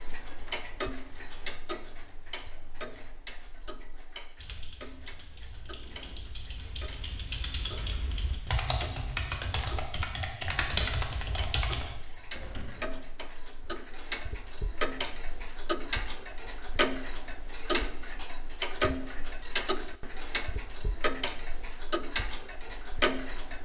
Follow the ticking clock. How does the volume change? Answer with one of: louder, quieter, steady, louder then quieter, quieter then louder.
quieter then louder.